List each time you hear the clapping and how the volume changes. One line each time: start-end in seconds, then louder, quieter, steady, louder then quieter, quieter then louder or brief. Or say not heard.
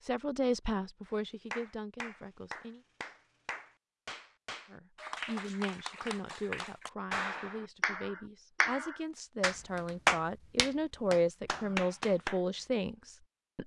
1.1-12.4 louder.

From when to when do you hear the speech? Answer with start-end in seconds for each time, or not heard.
0.0-2.8, 4.7-13.6.